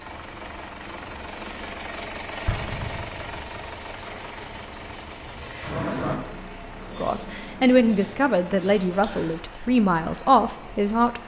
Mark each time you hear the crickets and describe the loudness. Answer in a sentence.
You can hear the crickets from 0.0 to 11.2 s, getting louder.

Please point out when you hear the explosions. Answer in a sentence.
You can hear the explosions from 2.5 to 3.8 s.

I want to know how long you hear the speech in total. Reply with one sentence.
You can hear the speech for 4 seconds altogether.